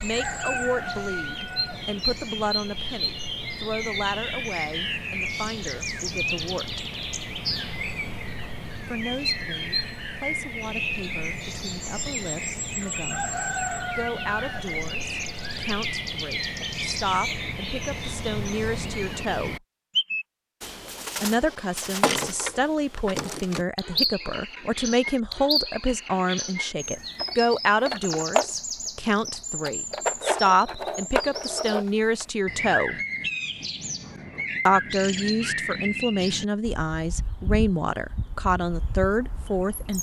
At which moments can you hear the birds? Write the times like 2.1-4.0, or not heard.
0.0-39.9.